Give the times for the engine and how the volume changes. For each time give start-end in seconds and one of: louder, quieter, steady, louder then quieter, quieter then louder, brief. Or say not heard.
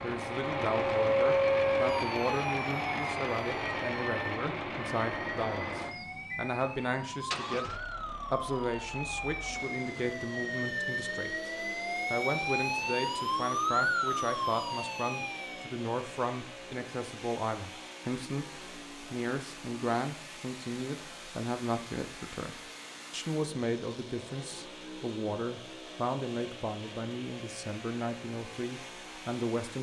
0.0-29.7 quieter.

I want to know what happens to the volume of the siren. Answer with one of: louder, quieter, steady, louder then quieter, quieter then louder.
quieter then louder.